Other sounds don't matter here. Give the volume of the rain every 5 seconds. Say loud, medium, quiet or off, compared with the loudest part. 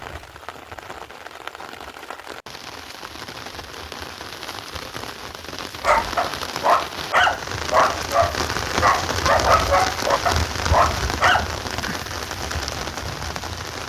medium, loud, loud.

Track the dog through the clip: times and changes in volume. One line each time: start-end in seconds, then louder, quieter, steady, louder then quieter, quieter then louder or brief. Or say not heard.
5.8-11.5 steady.